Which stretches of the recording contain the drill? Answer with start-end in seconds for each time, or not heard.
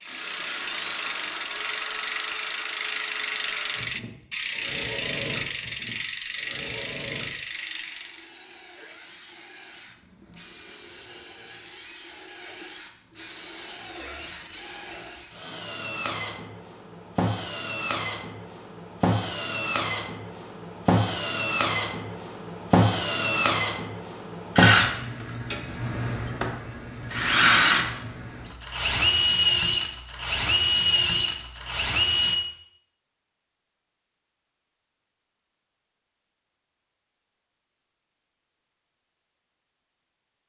0.1-32.4.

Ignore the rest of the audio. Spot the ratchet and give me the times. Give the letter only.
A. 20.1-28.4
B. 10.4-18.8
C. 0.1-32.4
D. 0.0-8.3
D.